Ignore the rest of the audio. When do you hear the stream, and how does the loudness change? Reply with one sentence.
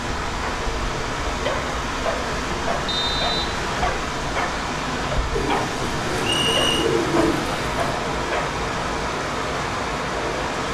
The stream can be heard from 0.0 to 10.6 s, at a steady volume.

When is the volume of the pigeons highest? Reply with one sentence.
The volume of the pigeons peaks at 7 seconds.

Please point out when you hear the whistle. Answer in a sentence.
The whistle can be heard from 2.9 to 3.5 s and from 6.2 to 6.8 s.